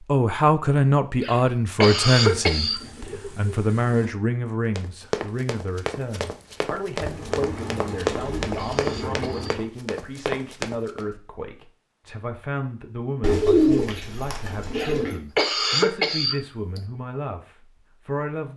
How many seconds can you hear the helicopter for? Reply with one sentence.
You can hear the helicopter for 3 seconds altogether.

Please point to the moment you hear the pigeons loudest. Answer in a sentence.
The loudest moment of the pigeons is at 14 seconds.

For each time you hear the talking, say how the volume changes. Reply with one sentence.
The talking can be heard from 0.1 to 18.5 s, getting quieter.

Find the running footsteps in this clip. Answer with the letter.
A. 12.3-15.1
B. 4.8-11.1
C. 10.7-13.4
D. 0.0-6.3
B.